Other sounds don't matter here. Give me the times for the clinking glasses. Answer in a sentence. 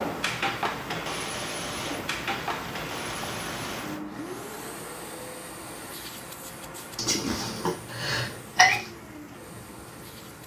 You can't hear the clinking glasses here.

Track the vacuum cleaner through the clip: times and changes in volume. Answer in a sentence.
The vacuum cleaner can be heard from 0.0 to 10.4 s, getting quieter.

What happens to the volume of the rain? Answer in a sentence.
The volume of the rain goes down.